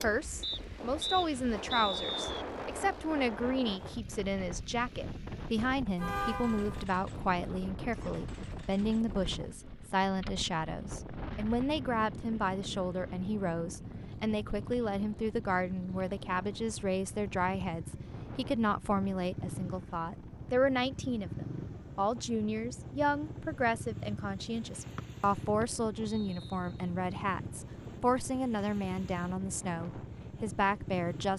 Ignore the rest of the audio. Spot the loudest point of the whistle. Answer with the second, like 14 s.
2 s.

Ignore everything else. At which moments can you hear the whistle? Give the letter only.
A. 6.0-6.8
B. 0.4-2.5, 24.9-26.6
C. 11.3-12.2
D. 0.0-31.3
B.